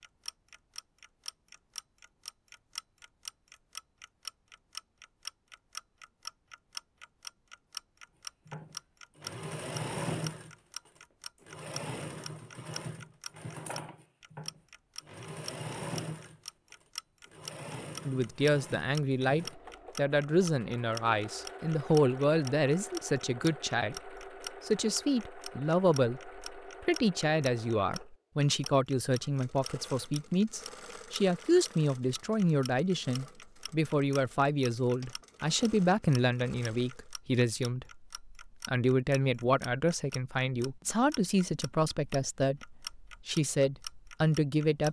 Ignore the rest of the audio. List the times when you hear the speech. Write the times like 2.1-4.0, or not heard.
18.1-44.8.